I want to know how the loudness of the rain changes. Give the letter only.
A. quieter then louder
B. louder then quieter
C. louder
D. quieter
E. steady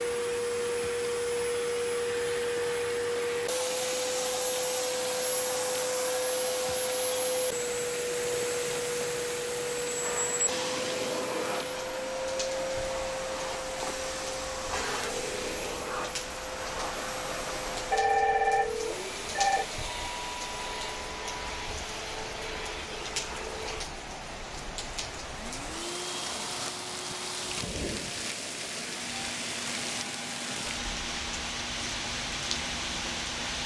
C.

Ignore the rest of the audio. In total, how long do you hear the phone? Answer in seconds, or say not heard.
2 s.